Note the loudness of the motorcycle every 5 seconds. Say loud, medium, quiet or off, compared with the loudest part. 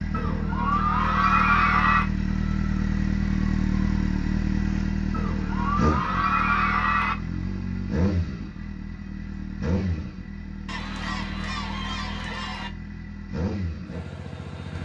loud, loud, medium.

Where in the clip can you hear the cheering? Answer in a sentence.
You can hear the cheering from 0.1 to 2.0 s, from 5.1 to 7.2 s and from 10.7 to 12.7 s.